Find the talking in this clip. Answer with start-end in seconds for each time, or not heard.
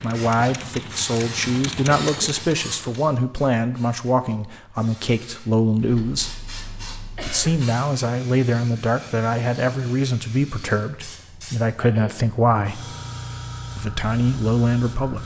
0.0-6.3, 7.2-12.9, 13.8-15.2.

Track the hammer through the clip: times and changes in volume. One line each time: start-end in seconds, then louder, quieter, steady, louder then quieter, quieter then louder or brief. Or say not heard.
not heard.